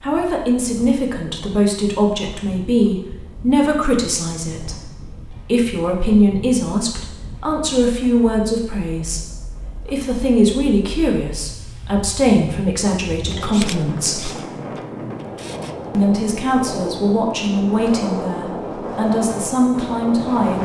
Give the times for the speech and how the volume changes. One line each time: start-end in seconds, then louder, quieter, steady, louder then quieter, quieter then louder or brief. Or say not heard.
0.0-14.3 steady
15.9-20.6 steady.